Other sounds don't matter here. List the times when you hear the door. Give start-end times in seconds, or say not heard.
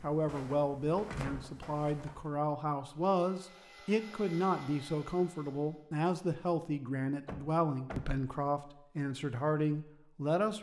1.1-2.2, 7.2-8.1.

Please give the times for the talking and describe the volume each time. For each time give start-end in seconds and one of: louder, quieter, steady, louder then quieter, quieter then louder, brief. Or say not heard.
0.0-10.5 steady.